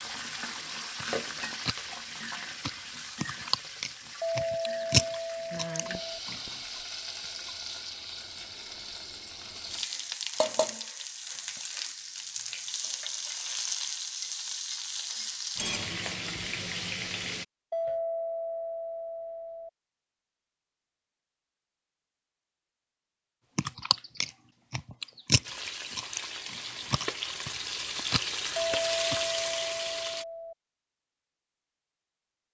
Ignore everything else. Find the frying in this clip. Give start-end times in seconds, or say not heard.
0.0-17.4, 25.4-30.2.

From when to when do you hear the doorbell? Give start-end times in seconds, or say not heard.
4.2-6.2, 17.7-19.7, 28.6-30.6.